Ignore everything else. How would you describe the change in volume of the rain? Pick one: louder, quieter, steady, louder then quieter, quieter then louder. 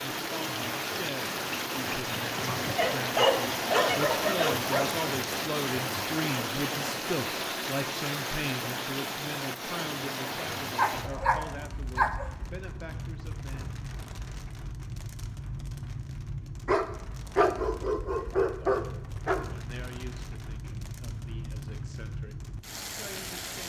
quieter.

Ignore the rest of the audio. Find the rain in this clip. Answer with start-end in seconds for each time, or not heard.
0.0-23.6.